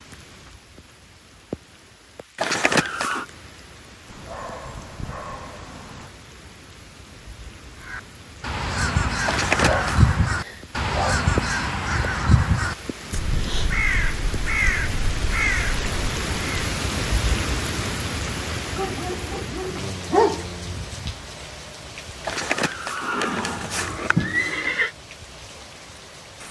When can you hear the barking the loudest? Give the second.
20 s.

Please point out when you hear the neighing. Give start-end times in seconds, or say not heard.
2.4-3.2, 9.2-10.1, 22.2-24.9.